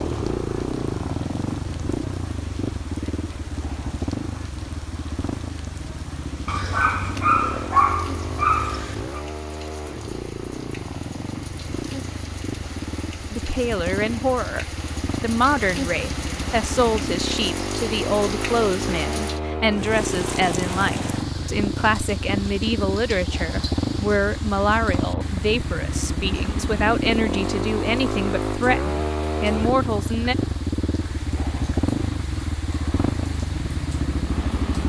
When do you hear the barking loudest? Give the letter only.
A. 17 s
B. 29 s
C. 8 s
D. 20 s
C.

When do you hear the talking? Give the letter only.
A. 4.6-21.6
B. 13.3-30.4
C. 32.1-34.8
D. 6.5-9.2
B.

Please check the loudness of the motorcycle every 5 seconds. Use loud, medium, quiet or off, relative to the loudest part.
loud, medium, medium, loud, loud, loud, loud.